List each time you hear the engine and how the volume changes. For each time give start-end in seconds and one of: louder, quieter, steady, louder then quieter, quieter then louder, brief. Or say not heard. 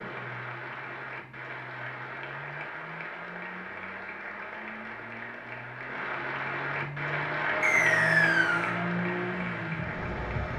0.0-10.5 louder.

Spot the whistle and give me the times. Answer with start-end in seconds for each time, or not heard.
7.6-8.8.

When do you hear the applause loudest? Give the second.
8 s.